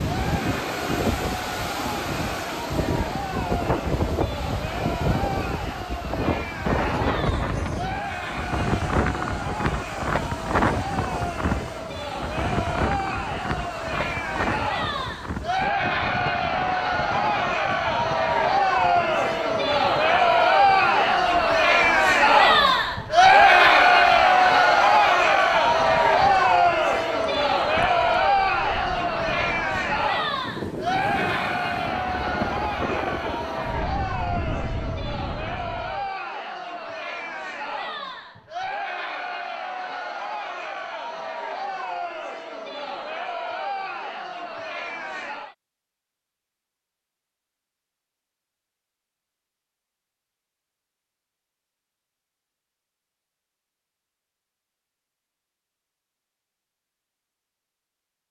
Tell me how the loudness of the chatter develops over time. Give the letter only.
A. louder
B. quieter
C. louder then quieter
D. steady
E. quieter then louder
C.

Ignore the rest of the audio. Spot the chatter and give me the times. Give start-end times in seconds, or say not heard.
0.0-45.5.